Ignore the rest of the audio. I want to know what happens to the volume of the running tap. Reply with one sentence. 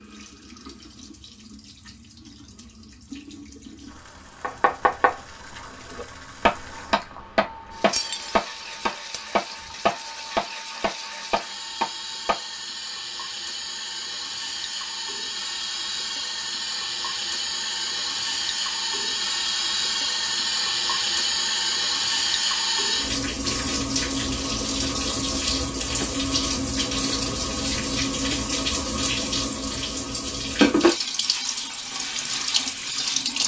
The loudness of the running tap goes up.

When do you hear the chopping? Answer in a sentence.
The chopping can be heard from 4.4 to 12.4 s.